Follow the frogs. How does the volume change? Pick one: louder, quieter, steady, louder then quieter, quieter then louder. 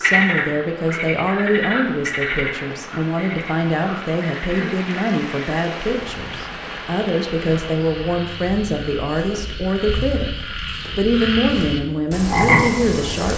quieter then louder.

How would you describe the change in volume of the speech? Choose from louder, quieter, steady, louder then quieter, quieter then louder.
steady.